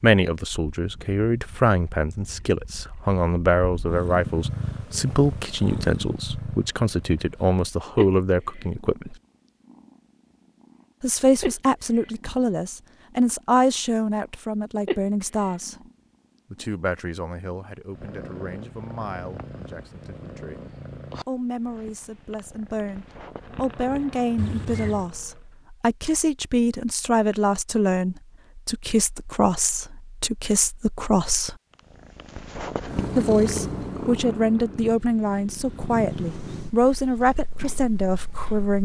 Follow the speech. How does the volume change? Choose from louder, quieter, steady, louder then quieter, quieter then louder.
quieter then louder.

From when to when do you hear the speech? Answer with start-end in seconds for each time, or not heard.
0.0-9.2, 11.0-15.8, 16.5-20.6, 21.2-31.6, 33.1-38.7.